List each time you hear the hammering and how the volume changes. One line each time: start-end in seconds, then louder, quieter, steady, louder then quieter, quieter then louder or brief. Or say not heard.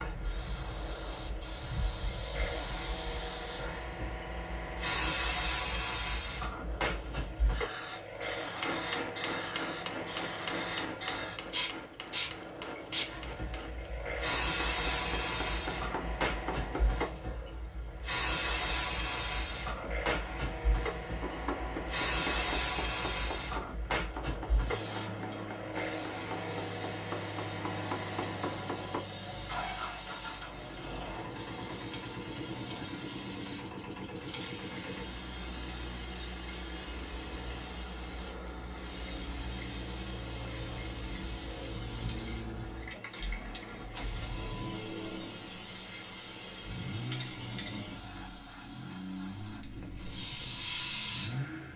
8.6-17.1 quieter then louder
21.2-29.1 quieter then louder.